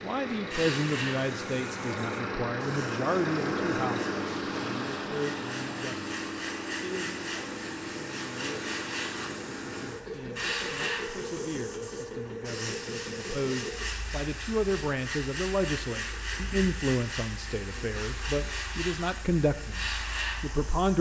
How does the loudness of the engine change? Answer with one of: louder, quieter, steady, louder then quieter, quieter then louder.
quieter.